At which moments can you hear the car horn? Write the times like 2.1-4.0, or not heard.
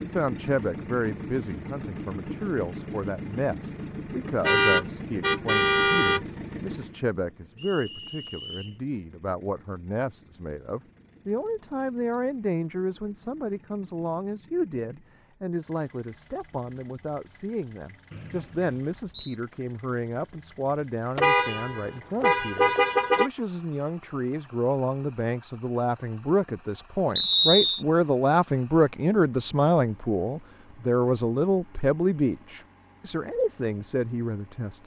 4.4-6.2, 21.1-23.3.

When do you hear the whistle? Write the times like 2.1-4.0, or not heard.
7.5-8.8, 18.1-19.4, 27.1-27.9.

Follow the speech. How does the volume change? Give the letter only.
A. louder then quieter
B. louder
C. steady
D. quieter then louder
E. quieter
B.